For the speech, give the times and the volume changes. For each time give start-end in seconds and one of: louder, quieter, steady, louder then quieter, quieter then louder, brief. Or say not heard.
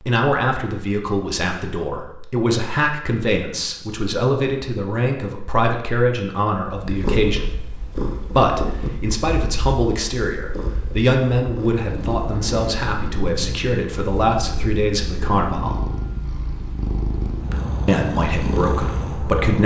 0.0-15.8 steady
17.9-19.6 brief.